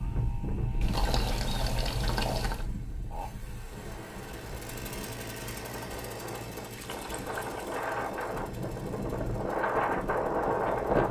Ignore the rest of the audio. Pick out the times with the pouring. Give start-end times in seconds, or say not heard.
0.8-2.7, 6.8-7.8.